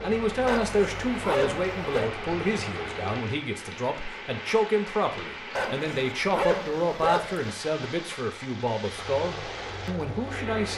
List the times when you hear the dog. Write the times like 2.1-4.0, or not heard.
0.5-2.1, 5.5-7.5.